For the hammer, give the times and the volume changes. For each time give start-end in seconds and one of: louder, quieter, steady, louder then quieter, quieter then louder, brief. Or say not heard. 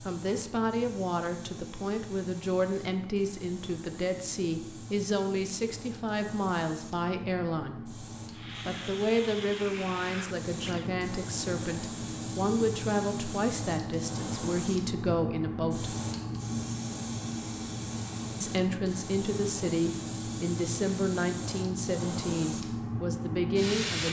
not heard.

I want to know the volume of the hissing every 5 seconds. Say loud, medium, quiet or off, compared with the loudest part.
medium, medium, loud, loud, loud.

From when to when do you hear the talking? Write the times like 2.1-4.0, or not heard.
0.0-8.0, 8.7-15.9, 18.4-24.0.